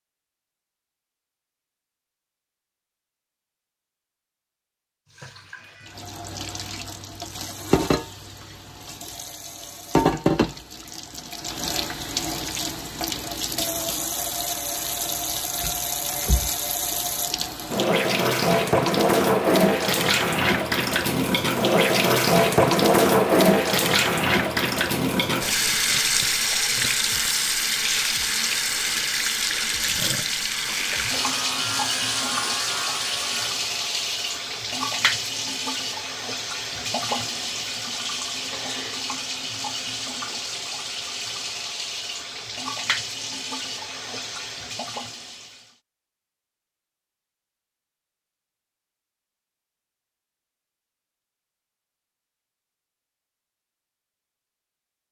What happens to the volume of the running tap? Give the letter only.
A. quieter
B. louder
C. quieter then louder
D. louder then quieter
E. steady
D.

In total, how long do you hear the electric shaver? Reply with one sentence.
The electric shaver can be heard for 3 seconds in total.